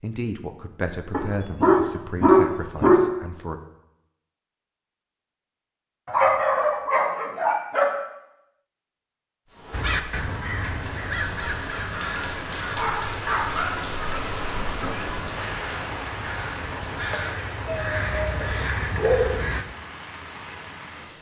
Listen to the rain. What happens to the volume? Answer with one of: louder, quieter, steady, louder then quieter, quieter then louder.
louder then quieter.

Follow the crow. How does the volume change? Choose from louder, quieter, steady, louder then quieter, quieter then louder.
quieter then louder.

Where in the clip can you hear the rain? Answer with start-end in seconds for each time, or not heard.
9.4-21.1.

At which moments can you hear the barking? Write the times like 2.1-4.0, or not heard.
1.1-3.0, 6.0-7.9, 12.0-13.9, 17.6-19.4.